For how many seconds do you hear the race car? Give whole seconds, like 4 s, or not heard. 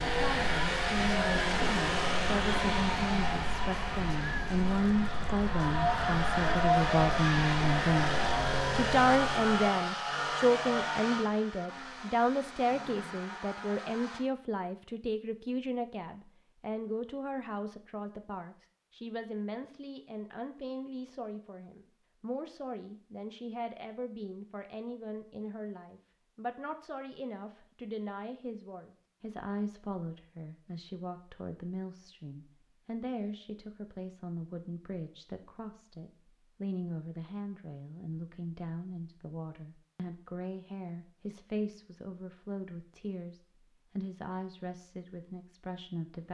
14 s.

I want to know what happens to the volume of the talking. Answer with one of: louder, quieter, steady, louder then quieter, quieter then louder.
quieter.